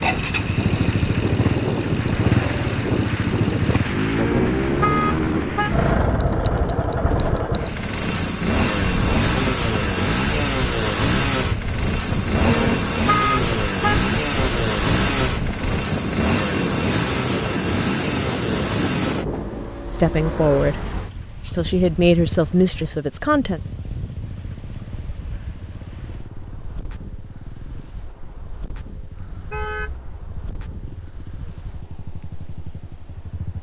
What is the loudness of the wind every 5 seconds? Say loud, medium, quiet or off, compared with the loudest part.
loud, loud, loud, loud, quiet, quiet, quiet.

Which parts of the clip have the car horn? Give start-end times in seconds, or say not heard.
4.2-5.8, 12.4-14.1, 29.1-30.2.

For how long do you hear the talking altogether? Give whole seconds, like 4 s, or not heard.
3 s.